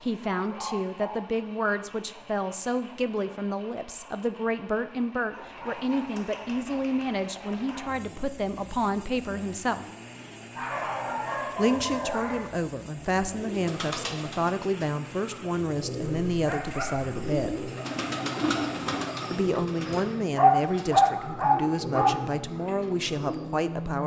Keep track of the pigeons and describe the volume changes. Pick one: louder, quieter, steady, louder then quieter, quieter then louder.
louder then quieter.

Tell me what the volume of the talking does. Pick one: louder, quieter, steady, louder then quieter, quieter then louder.
steady.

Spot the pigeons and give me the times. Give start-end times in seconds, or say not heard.
13.2-23.6.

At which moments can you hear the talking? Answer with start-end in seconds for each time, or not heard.
0.0-9.8, 11.6-17.7, 19.3-24.0.